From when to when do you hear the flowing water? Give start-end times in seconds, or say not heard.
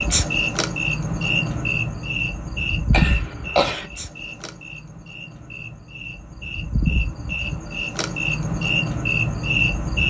not heard.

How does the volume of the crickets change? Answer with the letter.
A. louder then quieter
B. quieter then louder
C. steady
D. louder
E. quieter
B.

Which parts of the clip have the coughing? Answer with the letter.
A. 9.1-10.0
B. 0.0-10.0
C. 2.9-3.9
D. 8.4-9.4
C.